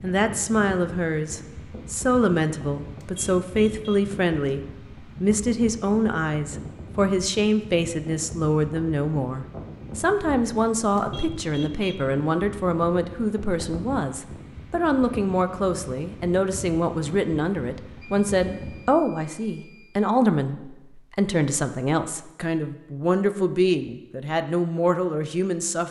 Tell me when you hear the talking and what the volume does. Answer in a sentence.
The talking can be heard from 0.0 to 25.8 s, at a steady volume.